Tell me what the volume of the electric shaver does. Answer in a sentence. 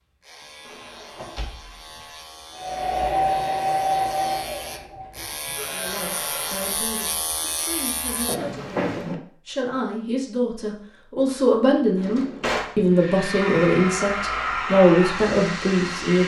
The volume of the electric shaver goes up.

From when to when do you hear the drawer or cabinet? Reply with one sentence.
The drawer or cabinet can be heard from 0.7 to 2.0 s, from 8.2 to 9.2 s and from 11.9 to 12.8 s.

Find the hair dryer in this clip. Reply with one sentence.
The hair dryer can be heard from 2.5 to 6.8 s and from 12.9 to 16.2 s.